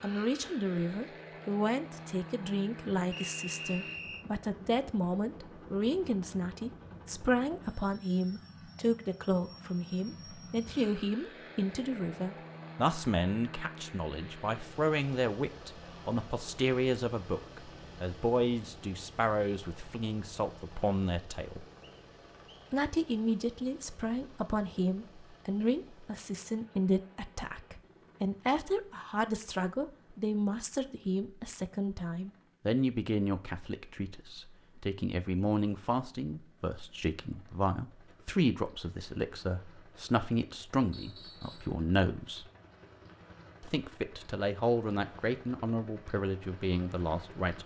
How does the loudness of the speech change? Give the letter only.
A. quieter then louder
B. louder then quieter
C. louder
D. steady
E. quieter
D.